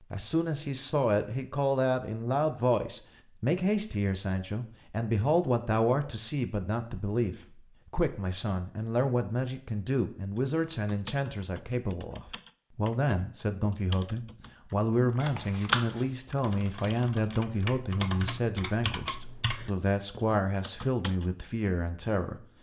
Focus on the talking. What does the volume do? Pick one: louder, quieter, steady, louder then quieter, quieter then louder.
steady.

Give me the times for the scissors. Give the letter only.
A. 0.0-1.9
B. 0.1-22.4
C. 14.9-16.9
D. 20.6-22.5
C.